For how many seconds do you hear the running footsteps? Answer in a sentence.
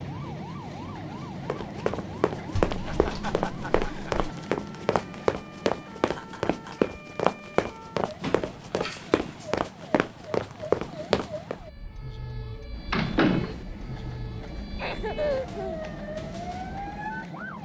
You can hear the running footsteps for 10 seconds altogether.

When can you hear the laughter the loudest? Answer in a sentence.
The loudest moment of the laughter is at 15 seconds.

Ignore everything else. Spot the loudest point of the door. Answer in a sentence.
The loudest moment of the door is at 13 seconds.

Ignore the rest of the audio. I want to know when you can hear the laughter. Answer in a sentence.
You can hear the laughter from 2.7 to 4.2 s, from 6.1 to 7.0 s and from 14.8 to 15.9 s.